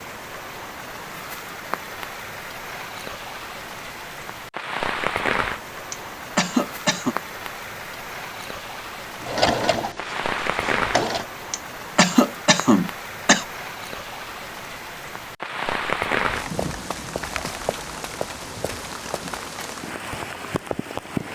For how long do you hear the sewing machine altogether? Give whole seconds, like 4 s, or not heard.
2 s.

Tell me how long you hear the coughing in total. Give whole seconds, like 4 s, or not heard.
3 s.